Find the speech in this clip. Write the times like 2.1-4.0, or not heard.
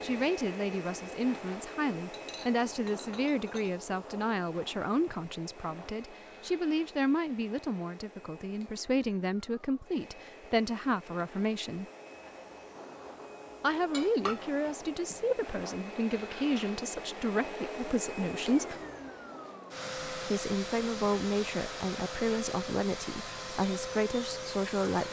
0.0-11.8, 13.6-18.8, 20.1-25.0.